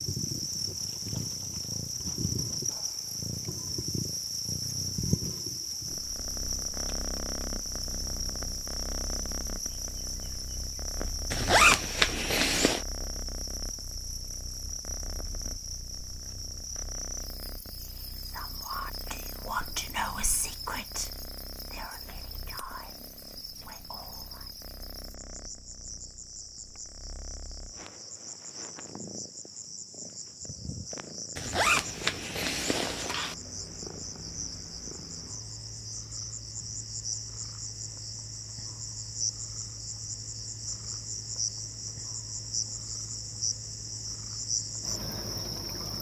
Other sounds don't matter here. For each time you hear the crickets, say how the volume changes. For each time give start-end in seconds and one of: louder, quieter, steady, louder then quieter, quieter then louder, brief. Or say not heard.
0.0-45.9 quieter then louder.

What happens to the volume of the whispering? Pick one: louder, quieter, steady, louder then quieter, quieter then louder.
quieter.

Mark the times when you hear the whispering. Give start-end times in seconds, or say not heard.
18.1-24.5.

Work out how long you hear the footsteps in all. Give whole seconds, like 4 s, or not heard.
not heard.